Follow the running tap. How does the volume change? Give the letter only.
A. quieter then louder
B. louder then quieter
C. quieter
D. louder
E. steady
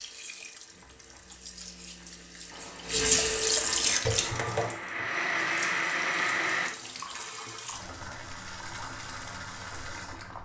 B.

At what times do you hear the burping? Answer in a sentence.
You can't hear the burping here.